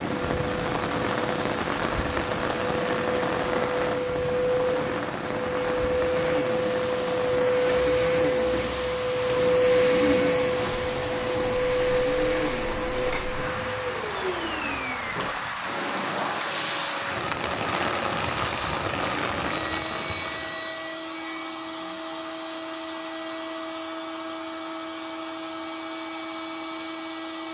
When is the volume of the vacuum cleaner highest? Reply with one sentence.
The loudest moment of the vacuum cleaner is at 10 seconds.